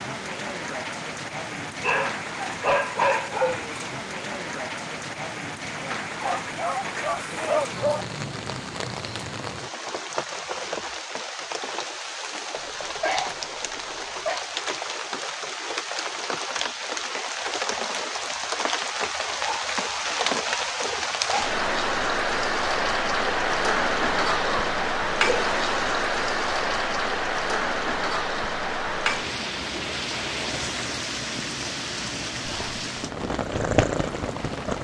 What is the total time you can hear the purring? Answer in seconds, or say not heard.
2 s.